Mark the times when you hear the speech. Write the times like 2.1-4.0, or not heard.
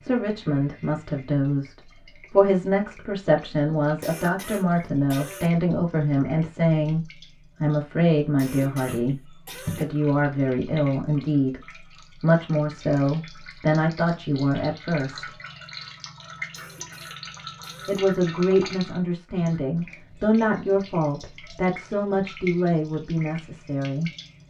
0.0-15.3, 17.9-24.1.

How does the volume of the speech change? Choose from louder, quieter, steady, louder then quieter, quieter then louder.
steady.